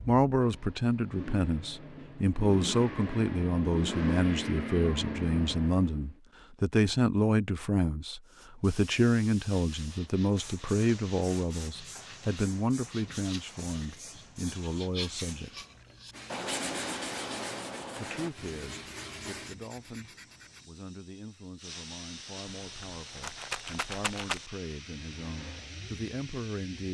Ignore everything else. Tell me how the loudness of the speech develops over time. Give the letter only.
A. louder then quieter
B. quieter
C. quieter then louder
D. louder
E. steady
B.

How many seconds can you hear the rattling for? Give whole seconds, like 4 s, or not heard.
2 s.